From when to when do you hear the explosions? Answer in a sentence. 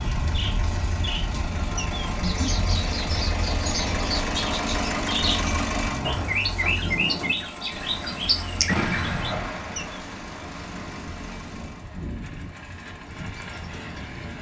You can hear the explosions from 8.7 to 10.0 s.